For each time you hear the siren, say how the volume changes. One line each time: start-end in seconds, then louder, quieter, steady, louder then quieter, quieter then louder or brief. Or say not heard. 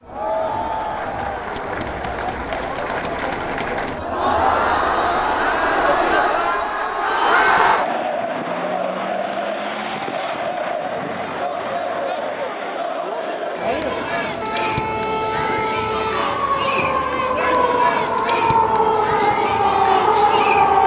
14.4-20.8 louder.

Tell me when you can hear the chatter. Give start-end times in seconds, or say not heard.
0.0-20.8.